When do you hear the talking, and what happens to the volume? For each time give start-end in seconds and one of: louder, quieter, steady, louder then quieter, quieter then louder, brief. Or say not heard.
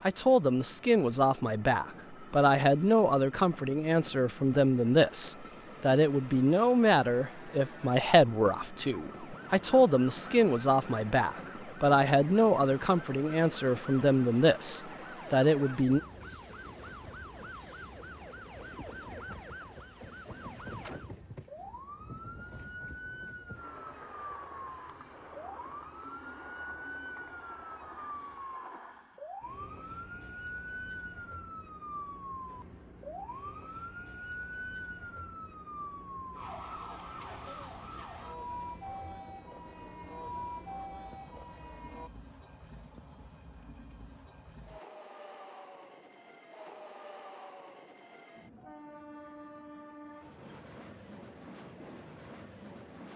0.0-16.0 steady.